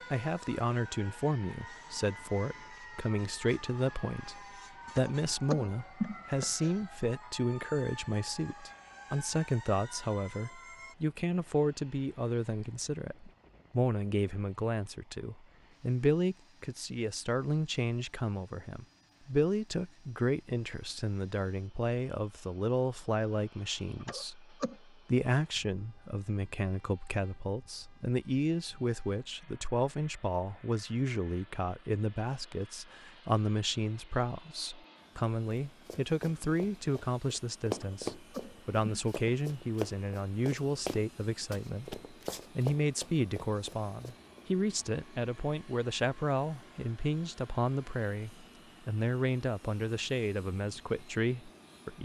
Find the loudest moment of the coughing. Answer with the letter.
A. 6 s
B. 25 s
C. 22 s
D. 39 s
A.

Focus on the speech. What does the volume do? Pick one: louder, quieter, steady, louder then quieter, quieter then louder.
steady.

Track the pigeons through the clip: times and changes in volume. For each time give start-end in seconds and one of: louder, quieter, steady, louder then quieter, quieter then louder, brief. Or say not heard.
not heard.